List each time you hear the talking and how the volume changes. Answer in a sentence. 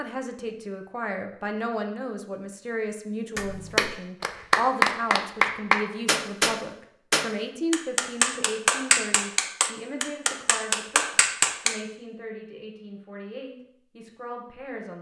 The talking can be heard from 0.0 to 14.9 s, getting quieter.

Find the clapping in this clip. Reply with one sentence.
You can hear the clapping from 3.4 to 11.8 s.